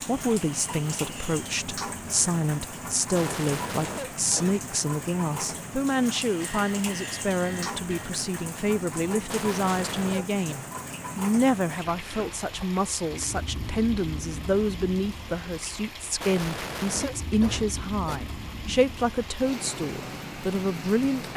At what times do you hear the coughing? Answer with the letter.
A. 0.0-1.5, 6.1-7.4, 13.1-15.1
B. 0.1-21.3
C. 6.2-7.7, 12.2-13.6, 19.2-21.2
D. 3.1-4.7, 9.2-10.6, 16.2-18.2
D.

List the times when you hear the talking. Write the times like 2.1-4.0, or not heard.
0.1-21.3.